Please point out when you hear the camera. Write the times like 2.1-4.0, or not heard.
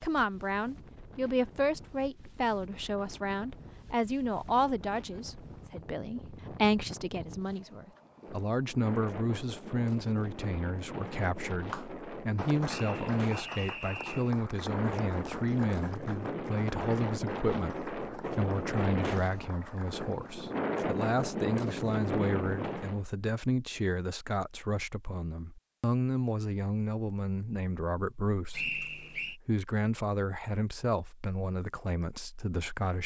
not heard.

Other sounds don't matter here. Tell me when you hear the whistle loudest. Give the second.
29 s.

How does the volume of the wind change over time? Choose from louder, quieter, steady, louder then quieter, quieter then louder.
louder.